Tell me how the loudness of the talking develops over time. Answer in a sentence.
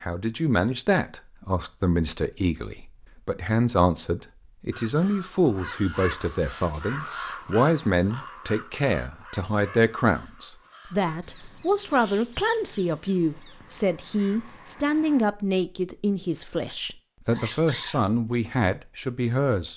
The loudness of the talking stays about the same.